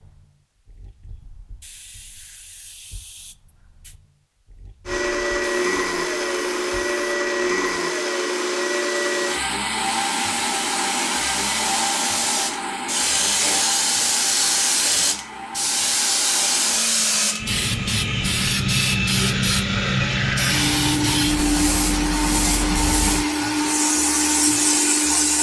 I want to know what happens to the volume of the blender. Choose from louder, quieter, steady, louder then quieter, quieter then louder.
quieter then louder.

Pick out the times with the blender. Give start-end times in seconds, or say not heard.
4.8-25.3.